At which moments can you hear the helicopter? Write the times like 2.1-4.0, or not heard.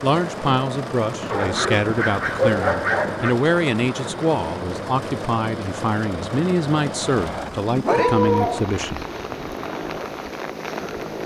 0.0-11.2.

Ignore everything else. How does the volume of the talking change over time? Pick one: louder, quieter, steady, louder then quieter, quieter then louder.
steady.